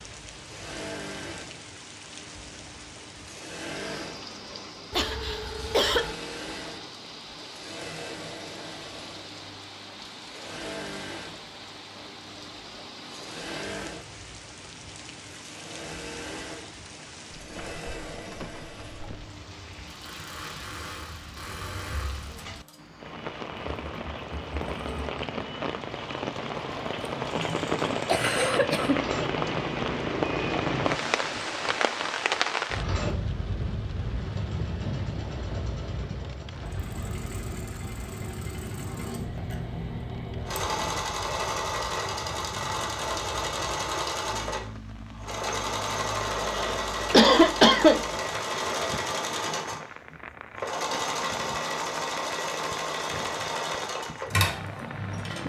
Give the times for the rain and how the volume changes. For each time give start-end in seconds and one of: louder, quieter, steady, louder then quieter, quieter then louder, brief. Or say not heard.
0.0-55.4 louder then quieter.